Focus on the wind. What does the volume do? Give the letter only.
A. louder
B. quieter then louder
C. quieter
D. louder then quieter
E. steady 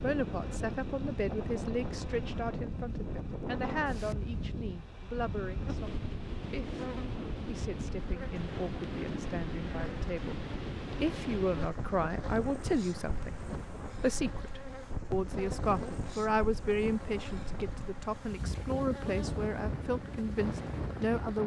E.